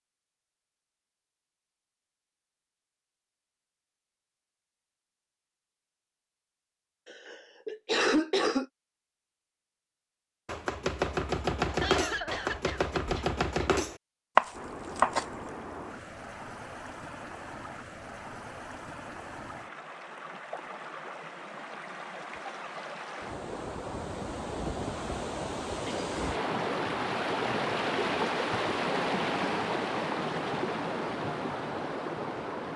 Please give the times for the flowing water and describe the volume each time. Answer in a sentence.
You can hear the flowing water from 14.5 to 32.7 s, getting louder.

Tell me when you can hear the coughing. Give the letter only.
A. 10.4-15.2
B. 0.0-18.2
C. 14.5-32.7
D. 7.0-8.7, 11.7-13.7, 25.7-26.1
D.